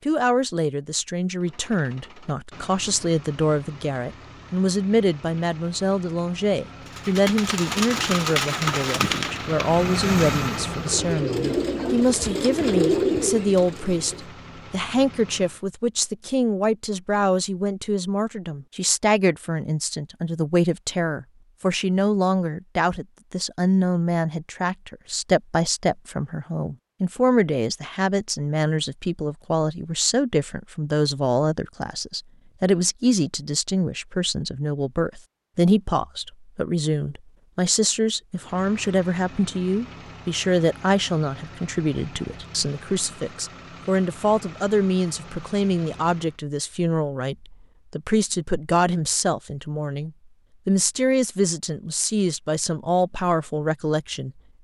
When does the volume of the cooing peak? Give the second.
13 s.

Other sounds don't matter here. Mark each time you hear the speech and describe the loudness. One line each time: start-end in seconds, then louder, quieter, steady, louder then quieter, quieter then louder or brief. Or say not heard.
0.1-54.3 steady.